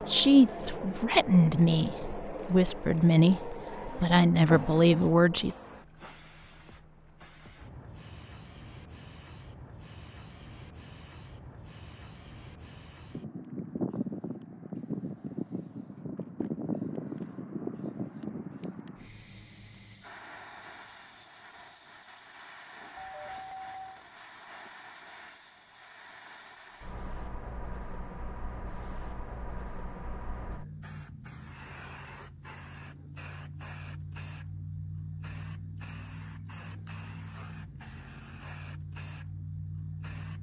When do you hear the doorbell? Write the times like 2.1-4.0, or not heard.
22.9-24.1.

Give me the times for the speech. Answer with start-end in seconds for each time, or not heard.
0.1-5.5.